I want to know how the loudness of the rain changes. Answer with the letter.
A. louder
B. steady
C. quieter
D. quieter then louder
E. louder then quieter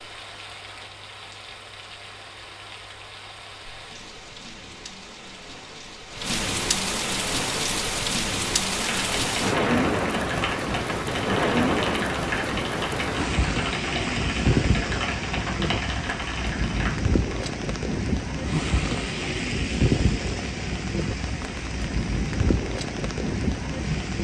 A.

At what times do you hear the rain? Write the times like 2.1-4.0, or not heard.
0.0-24.1.